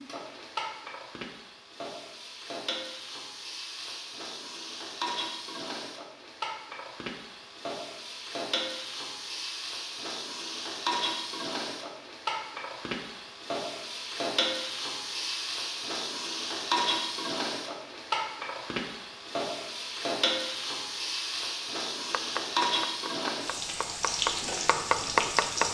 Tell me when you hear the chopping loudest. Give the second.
25 s.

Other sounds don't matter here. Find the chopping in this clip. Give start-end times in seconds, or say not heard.
22.1-25.7.